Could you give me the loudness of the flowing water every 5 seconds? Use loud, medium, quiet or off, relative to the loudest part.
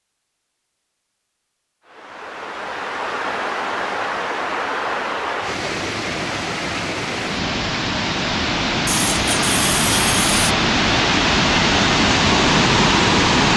medium, medium, loud.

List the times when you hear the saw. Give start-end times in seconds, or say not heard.
8.8-10.6.